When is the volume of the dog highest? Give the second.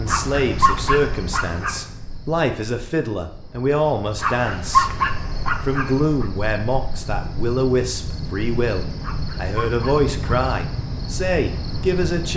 5 s.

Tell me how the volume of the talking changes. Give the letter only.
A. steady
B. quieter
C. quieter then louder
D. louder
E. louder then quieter
A.